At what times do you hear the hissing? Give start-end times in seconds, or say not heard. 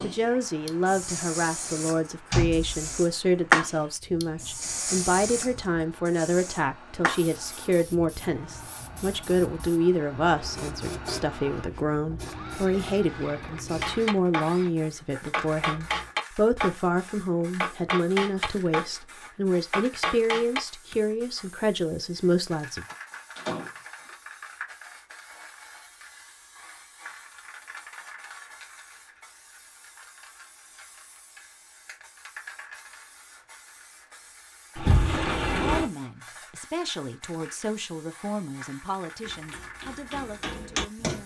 0.0-41.2.